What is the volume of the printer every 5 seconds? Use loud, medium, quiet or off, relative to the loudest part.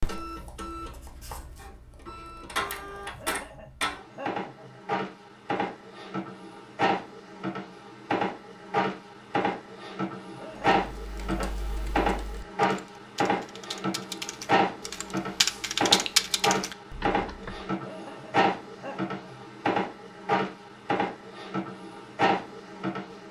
medium, loud, loud, loud, loud.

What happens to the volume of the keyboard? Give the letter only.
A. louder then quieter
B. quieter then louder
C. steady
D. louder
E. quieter
D.